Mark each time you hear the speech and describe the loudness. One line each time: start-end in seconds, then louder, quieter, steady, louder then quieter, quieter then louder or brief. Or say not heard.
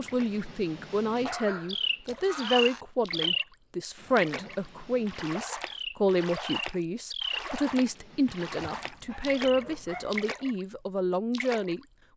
0.0-11.8 steady.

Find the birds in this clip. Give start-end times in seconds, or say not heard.
0.0-9.6.